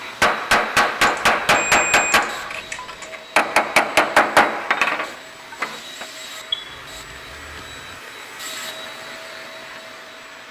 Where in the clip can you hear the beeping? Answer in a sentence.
You can hear the beeping from 1.0 to 3.1 s and from 6.5 to 8.0 s.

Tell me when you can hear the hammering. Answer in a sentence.
You can hear the hammering from 0.0 to 6.0 s.